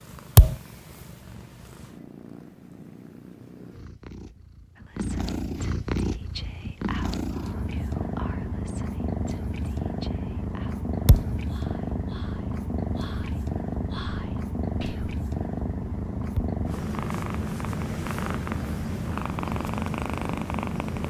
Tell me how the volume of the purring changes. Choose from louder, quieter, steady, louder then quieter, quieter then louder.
louder.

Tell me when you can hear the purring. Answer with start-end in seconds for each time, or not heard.
0.0-21.0.